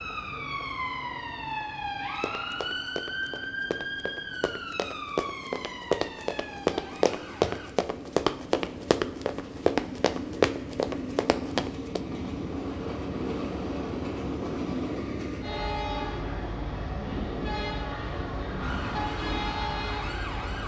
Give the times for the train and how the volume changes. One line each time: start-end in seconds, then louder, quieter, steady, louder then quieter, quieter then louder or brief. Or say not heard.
0.1-20.6 louder.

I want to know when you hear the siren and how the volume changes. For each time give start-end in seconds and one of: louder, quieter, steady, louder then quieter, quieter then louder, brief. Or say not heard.
0.0-7.7 quieter
18.6-20.6 brief.